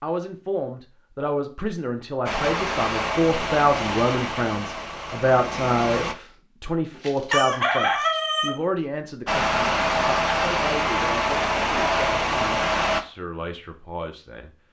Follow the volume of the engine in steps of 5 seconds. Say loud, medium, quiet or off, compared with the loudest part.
medium, loud, loud.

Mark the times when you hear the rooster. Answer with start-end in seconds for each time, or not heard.
7.0-8.5.